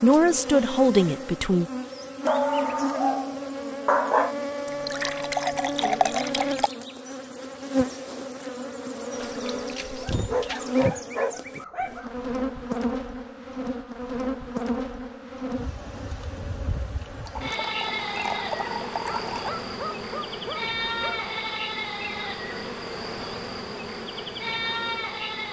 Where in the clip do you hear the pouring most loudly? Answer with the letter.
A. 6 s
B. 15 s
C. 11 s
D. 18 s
A.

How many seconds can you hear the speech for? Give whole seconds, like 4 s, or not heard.
2 s.